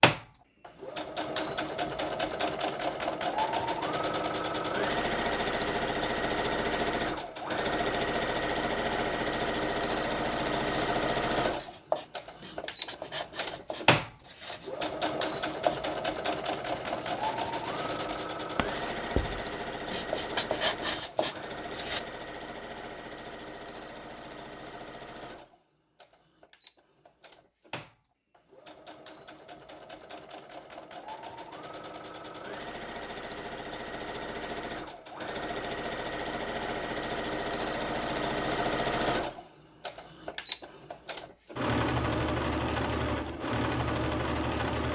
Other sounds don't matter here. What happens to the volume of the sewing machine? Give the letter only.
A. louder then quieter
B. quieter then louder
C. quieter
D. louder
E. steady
B.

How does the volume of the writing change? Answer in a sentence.
The loudness of the writing goes down, then up.